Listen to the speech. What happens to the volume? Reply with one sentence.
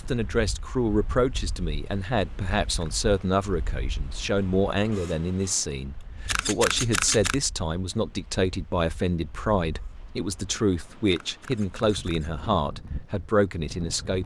The loudness of the speech stays about the same.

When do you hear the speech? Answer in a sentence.
The speech can be heard from 0.0 to 14.2 s.